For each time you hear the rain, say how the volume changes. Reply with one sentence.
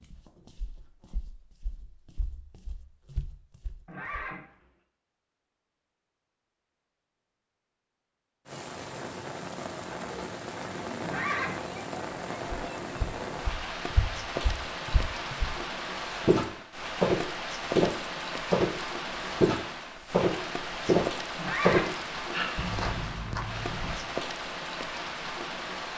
You can hear the rain from 8.4 to 25.9 s, at a steady volume.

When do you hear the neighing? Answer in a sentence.
The neighing can be heard from 3.9 to 4.5 s, from 11.0 to 11.6 s and from 21.4 to 22.6 s.